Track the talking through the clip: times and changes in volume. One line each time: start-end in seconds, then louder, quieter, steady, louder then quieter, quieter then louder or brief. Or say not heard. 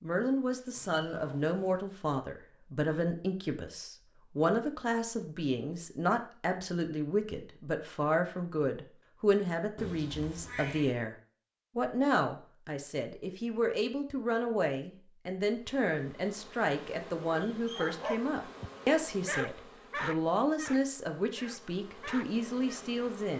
0.0-11.2 steady
11.8-23.3 steady.